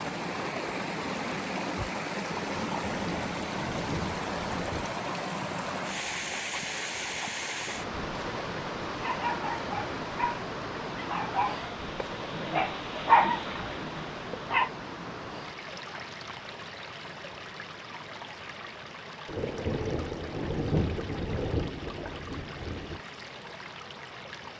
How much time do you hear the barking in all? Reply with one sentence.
The barking can be heard for 6 seconds in total.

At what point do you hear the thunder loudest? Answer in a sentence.
The loudest moment of the thunder is at 21 seconds.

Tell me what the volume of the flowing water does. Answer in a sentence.
The loudness of the flowing water goes down.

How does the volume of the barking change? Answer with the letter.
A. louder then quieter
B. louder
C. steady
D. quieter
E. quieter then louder
A.